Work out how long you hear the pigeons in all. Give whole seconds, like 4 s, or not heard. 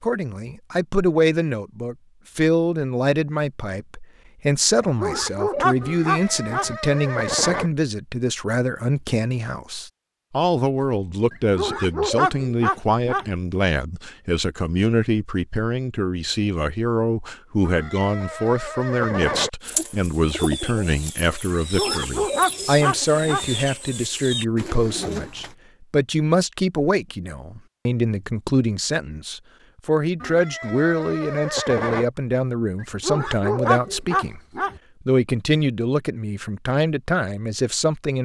6 s.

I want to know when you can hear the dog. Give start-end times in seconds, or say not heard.
5.0-6.8, 11.3-13.3, 21.5-23.5, 32.8-34.8.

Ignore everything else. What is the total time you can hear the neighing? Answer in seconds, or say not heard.
6 s.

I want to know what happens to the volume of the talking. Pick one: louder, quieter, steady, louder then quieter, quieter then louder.
steady.